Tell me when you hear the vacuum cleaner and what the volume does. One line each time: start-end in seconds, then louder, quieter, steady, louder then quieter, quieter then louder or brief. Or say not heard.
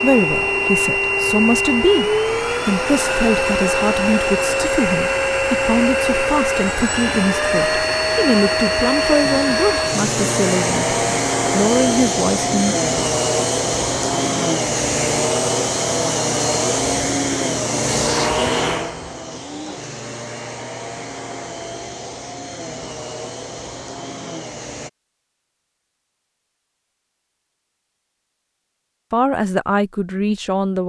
0.0-24.9 quieter.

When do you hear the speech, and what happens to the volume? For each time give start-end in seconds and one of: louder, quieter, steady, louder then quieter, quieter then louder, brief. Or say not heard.
0.0-12.8 steady
29.1-30.8 brief.